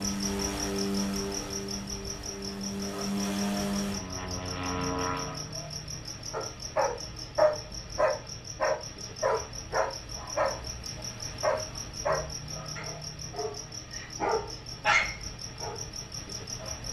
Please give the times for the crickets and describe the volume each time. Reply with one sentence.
The crickets can be heard from 0.0 to 16.8 s, at a steady volume.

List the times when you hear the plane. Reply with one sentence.
You can hear the plane from 0.0 to 5.5 s.